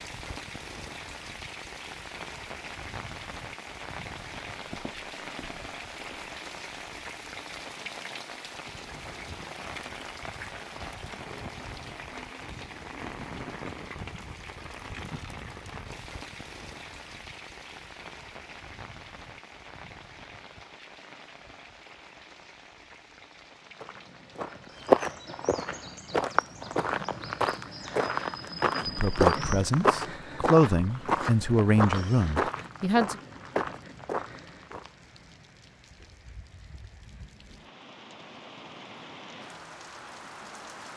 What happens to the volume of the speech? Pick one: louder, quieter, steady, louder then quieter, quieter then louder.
louder then quieter.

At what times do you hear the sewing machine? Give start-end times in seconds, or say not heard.
not heard.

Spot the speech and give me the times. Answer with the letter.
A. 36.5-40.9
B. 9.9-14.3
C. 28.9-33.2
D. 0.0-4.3
C.